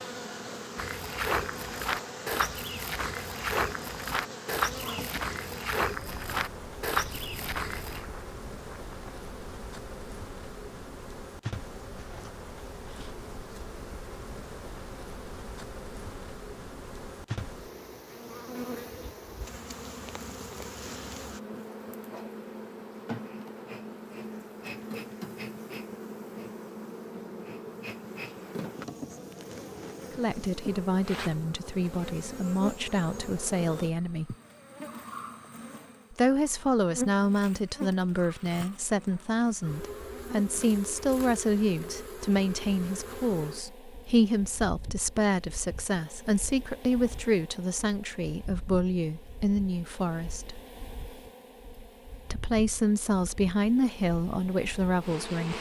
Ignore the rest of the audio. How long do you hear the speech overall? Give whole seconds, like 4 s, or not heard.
22 s.